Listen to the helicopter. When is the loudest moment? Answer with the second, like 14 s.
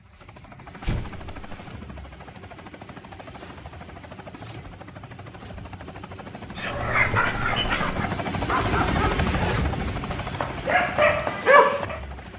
9 s.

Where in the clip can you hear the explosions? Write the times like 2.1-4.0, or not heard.
0.8-1.6.